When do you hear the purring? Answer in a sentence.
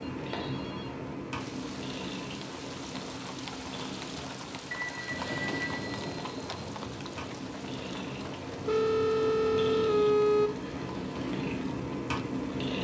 You can hear the purring from 0.0 to 12.8 s.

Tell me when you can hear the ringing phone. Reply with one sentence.
The ringing phone can be heard from 0.0 to 1.1 s, from 4.7 to 6.7 s and from 8.7 to 10.5 s.